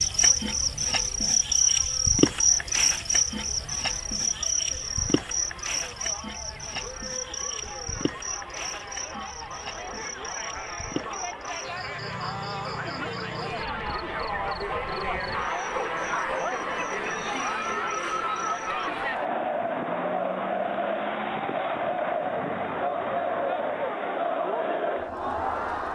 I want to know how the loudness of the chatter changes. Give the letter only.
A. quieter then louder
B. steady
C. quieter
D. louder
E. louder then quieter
D.